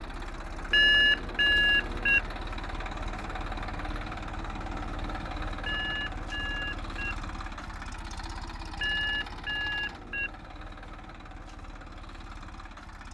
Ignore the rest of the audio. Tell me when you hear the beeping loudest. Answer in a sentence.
The volume of the beeping peaks at 1 second.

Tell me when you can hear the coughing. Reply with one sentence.
The coughing can't be heard in this clip.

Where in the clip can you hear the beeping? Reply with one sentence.
The beeping can be heard from 0.7 to 2.2 s, from 5.7 to 7.2 s and from 8.8 to 10.3 s.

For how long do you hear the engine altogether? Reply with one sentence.
The engine can be heard for 13 seconds in total.